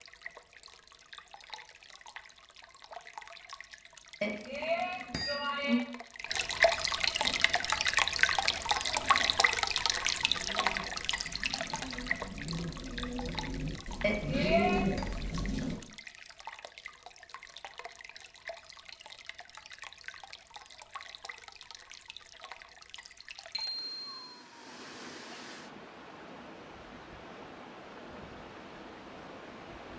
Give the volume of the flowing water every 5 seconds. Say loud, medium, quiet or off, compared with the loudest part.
quiet, loud, medium, quiet, quiet, quiet.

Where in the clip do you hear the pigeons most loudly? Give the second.
15 s.